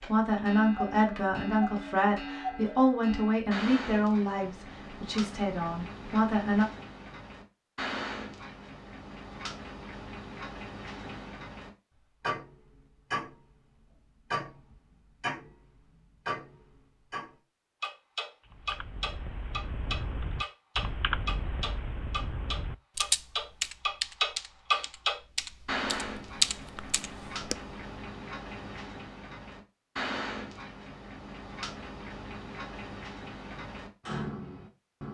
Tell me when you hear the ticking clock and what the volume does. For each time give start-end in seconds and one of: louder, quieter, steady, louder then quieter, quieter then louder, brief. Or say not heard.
0.0-35.0 louder then quieter.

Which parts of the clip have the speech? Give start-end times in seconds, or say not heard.
0.0-6.7.